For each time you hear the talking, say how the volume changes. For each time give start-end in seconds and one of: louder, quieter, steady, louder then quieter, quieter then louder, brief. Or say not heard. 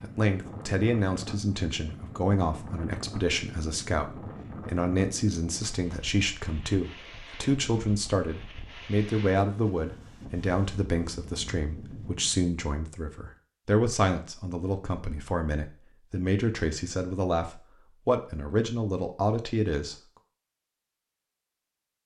0.0-19.9 steady.